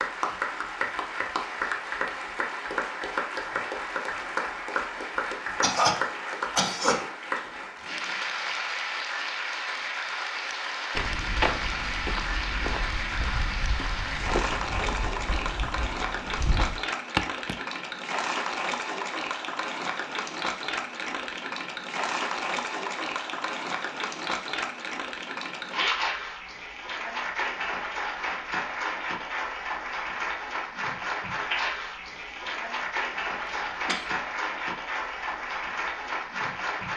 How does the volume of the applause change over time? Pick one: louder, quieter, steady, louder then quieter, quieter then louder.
steady.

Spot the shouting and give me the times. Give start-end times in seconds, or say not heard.
not heard.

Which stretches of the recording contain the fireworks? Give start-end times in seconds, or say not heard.
not heard.